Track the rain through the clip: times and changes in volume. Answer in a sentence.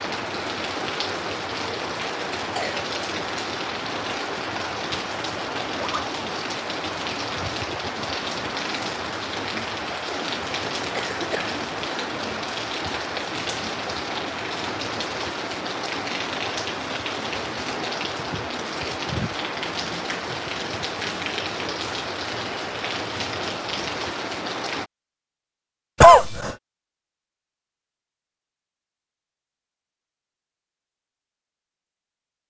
The rain can be heard from 0.0 to 24.9 s, at a steady volume.